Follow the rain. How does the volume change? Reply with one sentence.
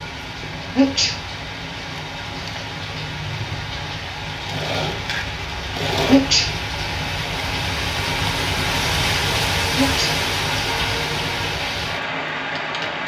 The loudness of the rain goes up.